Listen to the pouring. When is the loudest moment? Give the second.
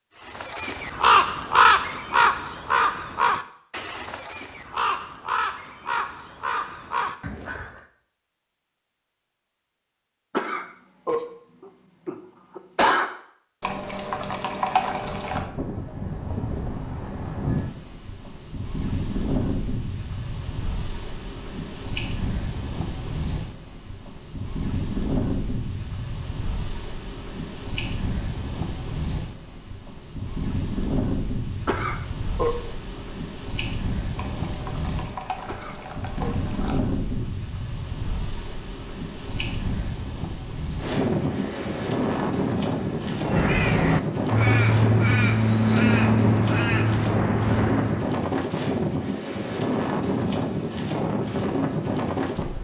15 s.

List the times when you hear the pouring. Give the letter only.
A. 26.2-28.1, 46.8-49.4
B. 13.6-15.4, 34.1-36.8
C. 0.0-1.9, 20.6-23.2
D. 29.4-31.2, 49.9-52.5
B.